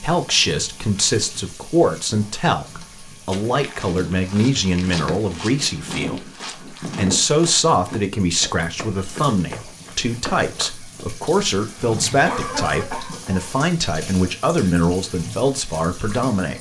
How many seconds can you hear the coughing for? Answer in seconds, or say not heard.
2 s.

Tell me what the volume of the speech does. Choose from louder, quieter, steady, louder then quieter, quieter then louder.
steady.